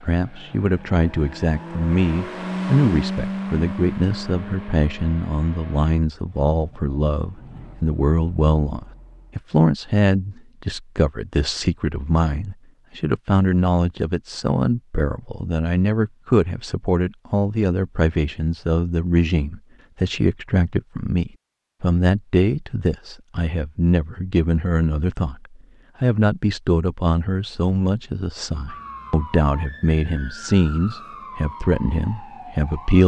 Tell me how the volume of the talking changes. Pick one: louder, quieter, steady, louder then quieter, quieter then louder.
steady.